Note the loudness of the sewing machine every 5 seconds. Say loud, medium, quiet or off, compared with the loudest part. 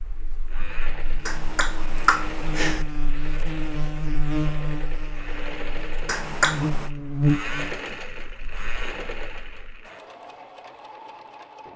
medium, loud, medium.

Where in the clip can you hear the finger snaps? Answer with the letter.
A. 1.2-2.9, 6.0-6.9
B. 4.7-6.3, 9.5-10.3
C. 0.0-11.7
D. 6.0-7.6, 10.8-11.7
A.